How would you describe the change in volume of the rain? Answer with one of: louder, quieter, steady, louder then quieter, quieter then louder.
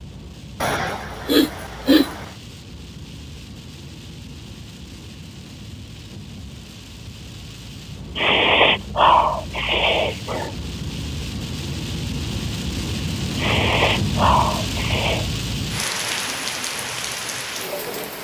louder.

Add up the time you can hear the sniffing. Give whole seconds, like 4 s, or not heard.
6 s.